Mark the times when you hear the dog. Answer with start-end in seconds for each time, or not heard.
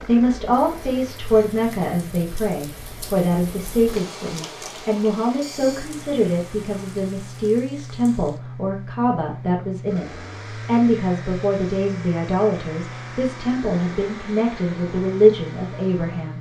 not heard.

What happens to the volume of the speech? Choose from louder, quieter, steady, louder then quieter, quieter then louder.
steady.